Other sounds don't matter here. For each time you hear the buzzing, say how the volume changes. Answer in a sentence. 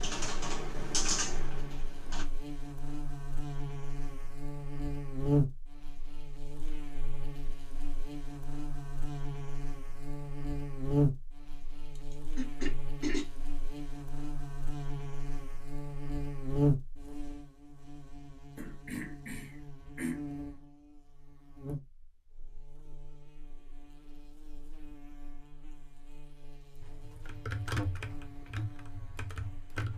You can hear the buzzing from 0.2 to 29.9 s, getting quieter.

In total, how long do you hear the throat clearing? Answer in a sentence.
You can hear the throat clearing for 3 seconds altogether.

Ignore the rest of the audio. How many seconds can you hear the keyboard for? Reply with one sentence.
You can hear the keyboard for 5 seconds altogether.